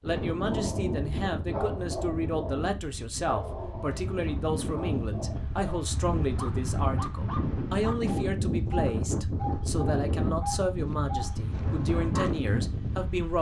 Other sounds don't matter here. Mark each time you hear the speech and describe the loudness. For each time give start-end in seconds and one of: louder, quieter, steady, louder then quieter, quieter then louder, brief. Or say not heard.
0.0-13.3 steady.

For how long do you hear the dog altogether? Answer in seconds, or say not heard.
12 s.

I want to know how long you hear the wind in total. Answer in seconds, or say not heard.
13 s.